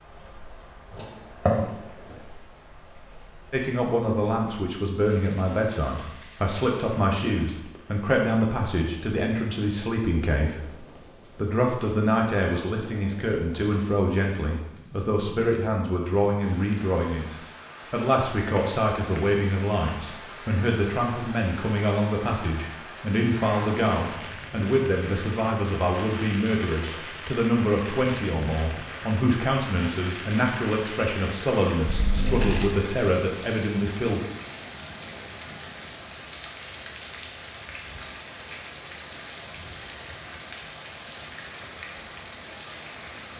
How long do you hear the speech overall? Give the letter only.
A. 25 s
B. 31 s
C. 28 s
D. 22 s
B.